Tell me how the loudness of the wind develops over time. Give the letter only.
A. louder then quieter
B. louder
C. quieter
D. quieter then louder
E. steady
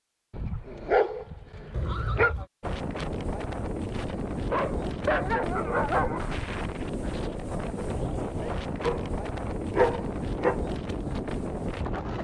E.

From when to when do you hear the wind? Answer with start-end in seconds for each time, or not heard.
2.6-12.1.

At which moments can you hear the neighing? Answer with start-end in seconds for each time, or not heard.
1.7-2.5.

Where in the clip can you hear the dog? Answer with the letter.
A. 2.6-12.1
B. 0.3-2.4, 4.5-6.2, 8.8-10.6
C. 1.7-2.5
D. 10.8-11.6
B.